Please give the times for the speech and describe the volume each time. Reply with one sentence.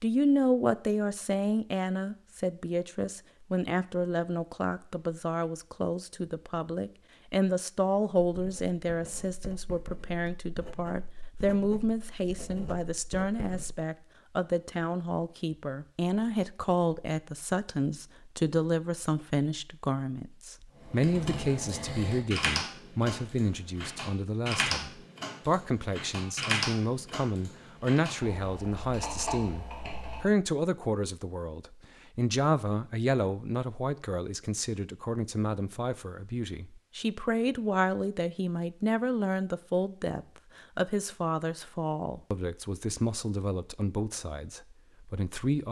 The speech can be heard from 0.0 to 45.6 s, at a steady volume.